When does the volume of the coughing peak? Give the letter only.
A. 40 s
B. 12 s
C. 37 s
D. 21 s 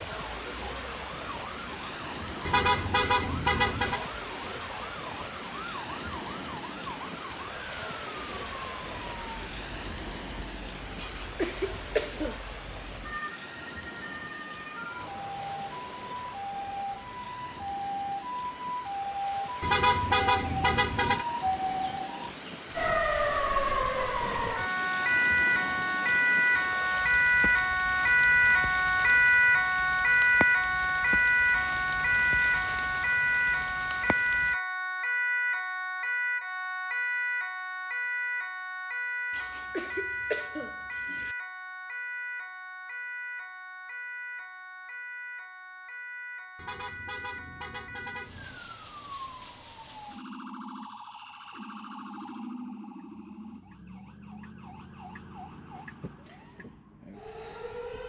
B.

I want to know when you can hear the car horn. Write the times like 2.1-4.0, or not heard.
2.5-4.0, 19.6-21.2, 46.5-48.6.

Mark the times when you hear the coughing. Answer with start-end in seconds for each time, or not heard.
10.9-12.4, 39.3-41.4.